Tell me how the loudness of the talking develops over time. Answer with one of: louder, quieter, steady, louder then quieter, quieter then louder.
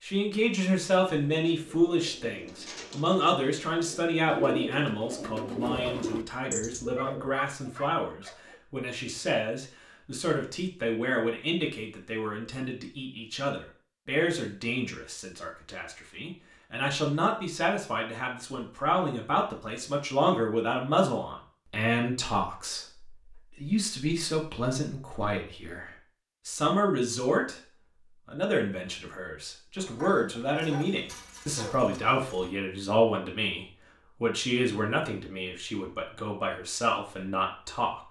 steady.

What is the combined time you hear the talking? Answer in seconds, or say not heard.
38 s.